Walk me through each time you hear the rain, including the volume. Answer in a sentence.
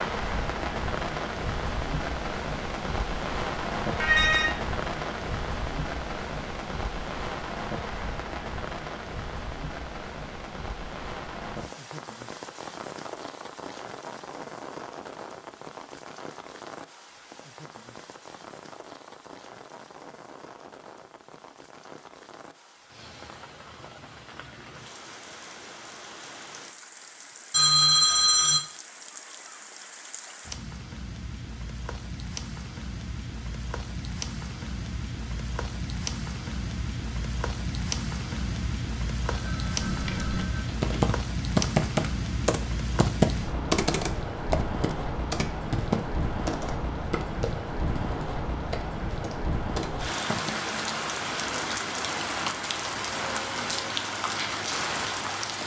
You can hear the rain from 0.0 to 55.6 s, getting quieter then louder.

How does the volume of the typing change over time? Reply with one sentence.
The volume of the typing goes down.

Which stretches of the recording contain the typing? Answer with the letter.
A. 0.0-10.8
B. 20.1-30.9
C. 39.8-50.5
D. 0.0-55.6
C.